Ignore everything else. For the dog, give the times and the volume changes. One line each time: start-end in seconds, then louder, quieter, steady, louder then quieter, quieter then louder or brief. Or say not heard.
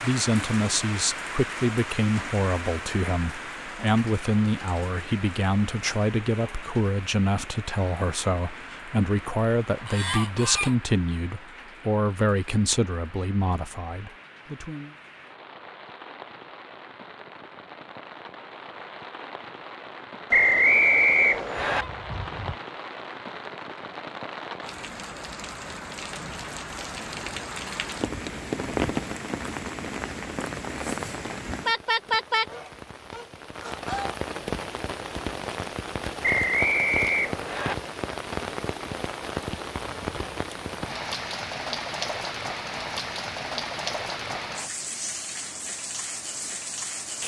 not heard.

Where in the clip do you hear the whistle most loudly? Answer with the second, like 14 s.
21 s.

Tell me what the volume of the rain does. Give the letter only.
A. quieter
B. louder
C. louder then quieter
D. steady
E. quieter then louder
E.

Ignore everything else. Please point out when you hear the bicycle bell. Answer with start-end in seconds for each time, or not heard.
not heard.